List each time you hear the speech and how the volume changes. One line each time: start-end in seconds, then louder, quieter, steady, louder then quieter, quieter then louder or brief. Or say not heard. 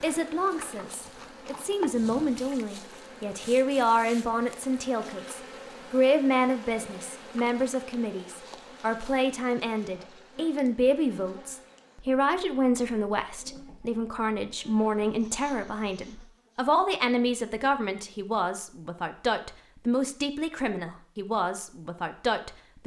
0.0-22.8 steady.